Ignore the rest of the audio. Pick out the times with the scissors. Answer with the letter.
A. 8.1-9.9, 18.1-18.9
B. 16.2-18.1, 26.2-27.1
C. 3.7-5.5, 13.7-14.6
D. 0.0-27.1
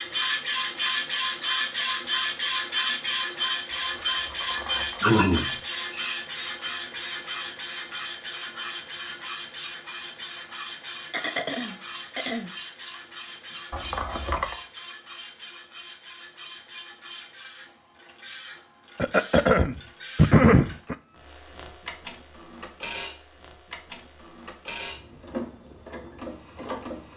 C.